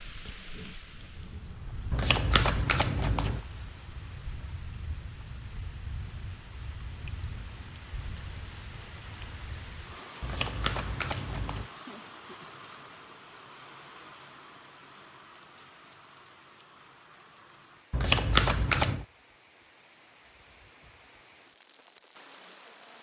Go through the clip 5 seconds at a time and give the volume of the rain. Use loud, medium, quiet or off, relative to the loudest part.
loud, loud, loud, medium, medium.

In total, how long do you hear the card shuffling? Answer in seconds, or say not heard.
4 s.